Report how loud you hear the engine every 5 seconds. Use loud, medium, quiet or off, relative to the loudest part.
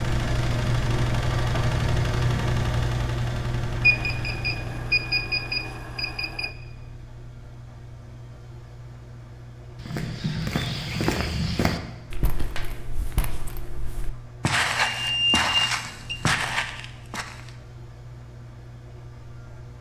loud, quiet, quiet, quiet.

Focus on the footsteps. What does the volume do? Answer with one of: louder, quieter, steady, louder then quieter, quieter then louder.
quieter then louder.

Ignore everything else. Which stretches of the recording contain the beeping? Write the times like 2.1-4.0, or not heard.
3.8-6.5, 14.8-16.2.